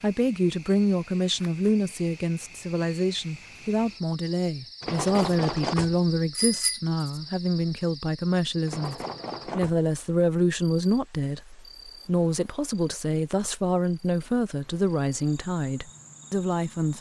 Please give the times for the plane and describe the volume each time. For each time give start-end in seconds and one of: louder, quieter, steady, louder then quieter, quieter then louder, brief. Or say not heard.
not heard.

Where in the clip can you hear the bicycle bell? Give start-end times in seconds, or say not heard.
4.8-6.8, 8.7-9.8.